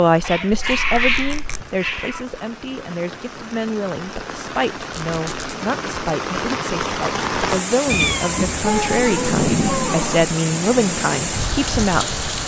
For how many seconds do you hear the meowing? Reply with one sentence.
You can hear the meowing for 3 seconds altogether.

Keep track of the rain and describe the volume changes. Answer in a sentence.
The loudness of the rain goes up.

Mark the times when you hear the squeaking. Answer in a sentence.
You can hear the squeaking from 0.5 to 1.6 s, from 4.9 to 5.5 s and from 8.6 to 10.3 s.